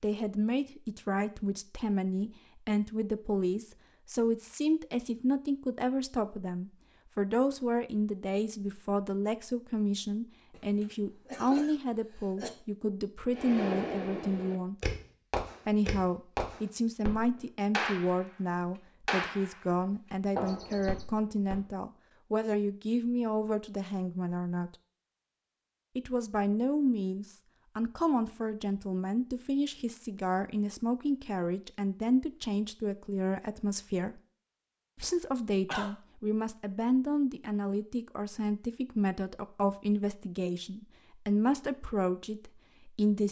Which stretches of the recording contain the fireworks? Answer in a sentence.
You can hear the fireworks from 13.3 to 18.2 s, from 19.1 to 19.6 s and from 20.4 to 21.6 s.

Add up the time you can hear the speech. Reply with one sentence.
The speech can be heard for 40 seconds in total.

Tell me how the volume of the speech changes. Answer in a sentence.
The volume of the speech stays about the same.